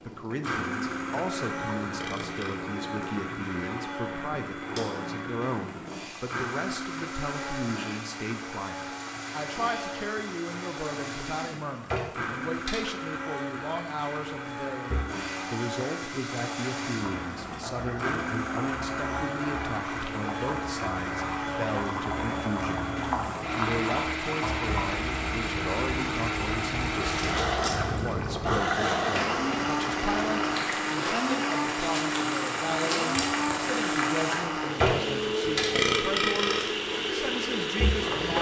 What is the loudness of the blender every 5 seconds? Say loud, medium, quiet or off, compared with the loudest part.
medium, medium, medium, medium, loud, loud, loud, loud.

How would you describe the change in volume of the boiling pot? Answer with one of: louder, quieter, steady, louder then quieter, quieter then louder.
louder.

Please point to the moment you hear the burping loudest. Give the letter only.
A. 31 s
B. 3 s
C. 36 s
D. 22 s
C.